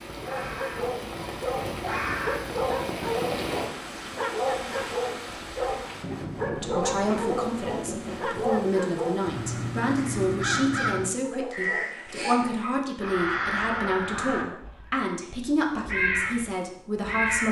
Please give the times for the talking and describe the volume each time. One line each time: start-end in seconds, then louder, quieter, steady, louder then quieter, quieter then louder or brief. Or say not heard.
6.5-17.4 steady.